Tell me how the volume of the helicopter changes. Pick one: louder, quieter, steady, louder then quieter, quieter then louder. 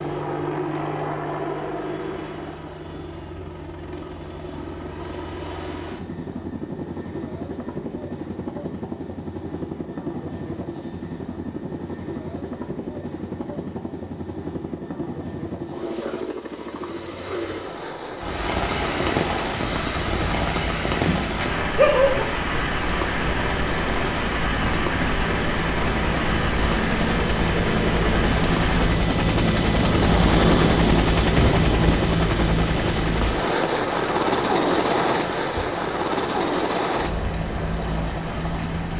louder.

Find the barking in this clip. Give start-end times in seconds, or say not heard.
20.9-22.2.